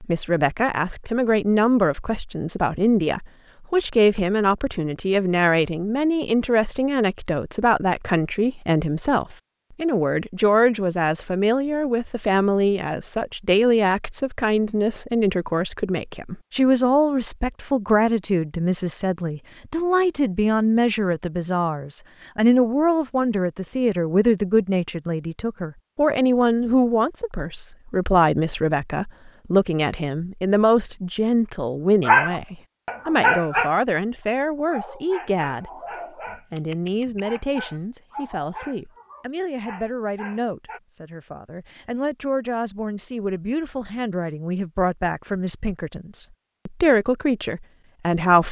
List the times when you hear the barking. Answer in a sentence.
You can hear the barking from 32.0 to 40.8 s.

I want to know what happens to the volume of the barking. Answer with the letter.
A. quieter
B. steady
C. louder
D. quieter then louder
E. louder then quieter
A.